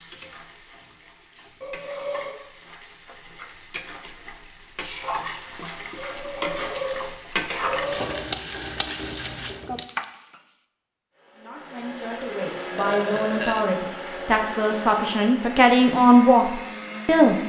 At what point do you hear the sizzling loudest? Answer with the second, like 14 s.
8 s.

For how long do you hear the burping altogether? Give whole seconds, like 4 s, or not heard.
4 s.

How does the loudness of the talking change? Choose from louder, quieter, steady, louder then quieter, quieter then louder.
louder.